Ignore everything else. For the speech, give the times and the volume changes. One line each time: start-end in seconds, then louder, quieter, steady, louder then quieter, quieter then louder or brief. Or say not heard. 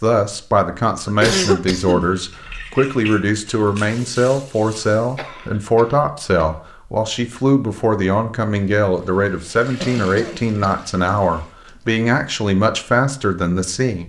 0.0-14.0 steady.